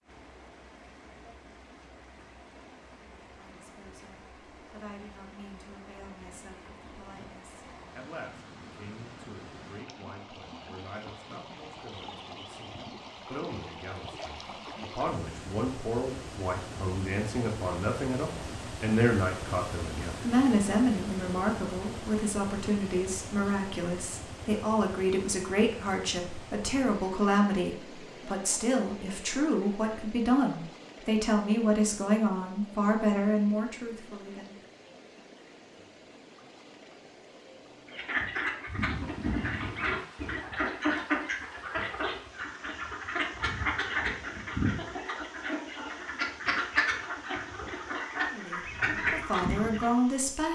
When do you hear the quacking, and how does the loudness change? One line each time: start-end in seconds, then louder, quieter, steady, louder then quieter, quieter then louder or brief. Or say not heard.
37.9-50.0 steady.